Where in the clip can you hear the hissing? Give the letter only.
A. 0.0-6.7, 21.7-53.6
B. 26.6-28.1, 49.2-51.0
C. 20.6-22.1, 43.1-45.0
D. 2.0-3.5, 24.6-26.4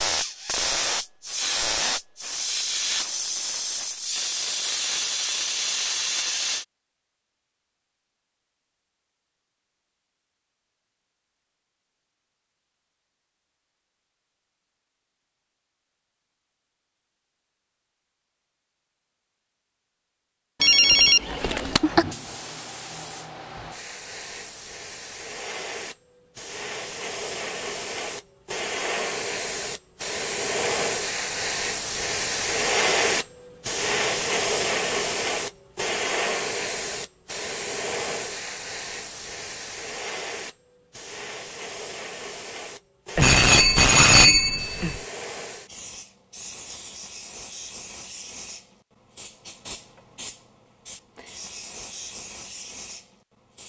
A.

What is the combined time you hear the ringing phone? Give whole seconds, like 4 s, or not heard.
3 s.